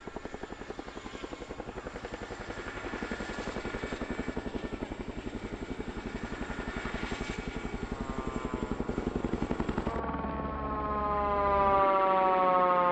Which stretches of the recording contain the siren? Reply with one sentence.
You can hear the siren from 7.8 to 12.8 s.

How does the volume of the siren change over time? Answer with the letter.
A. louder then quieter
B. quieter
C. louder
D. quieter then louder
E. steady
C.